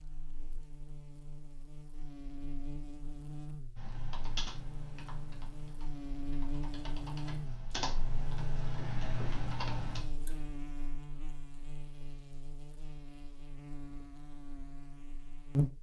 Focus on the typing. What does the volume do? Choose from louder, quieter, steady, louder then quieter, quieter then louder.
quieter then louder.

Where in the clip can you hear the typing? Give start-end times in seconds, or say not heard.
3.8-10.3.